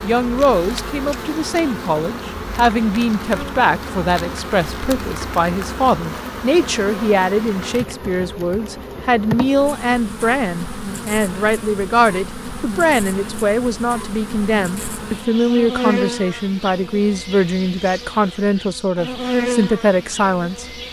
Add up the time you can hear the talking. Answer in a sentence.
You can hear the talking for 21 seconds altogether.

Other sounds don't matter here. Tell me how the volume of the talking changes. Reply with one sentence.
The volume of the talking stays about the same.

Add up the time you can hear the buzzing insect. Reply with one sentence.
The buzzing insect can be heard for 21 seconds in total.